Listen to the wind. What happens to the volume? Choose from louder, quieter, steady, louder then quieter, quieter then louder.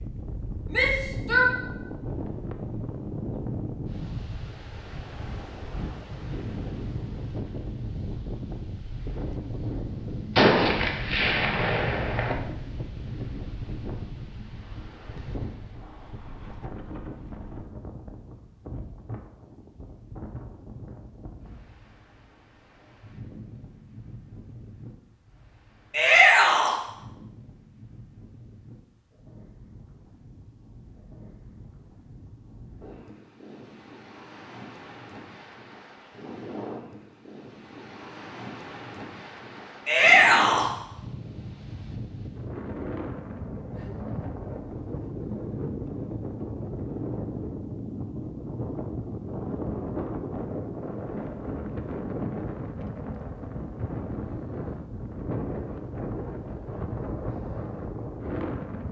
quieter then louder.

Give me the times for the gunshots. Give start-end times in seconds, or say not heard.
10.3-12.3.